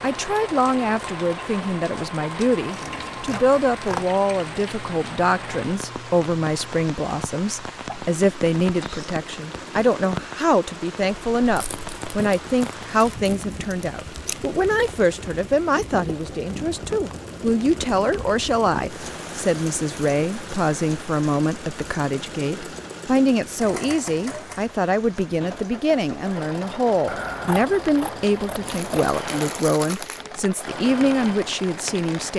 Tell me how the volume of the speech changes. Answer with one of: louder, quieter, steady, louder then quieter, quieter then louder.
steady.